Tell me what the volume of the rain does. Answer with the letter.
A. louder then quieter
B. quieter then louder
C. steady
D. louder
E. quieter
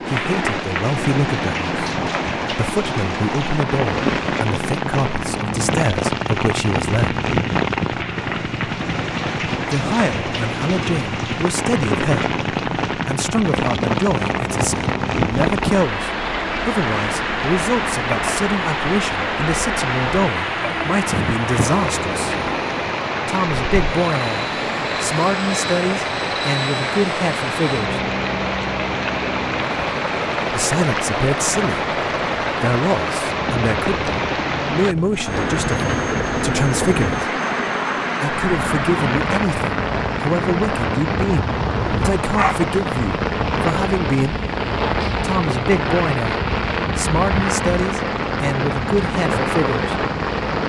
C.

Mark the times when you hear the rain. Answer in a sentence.
You can hear the rain from 0.0 to 50.6 s.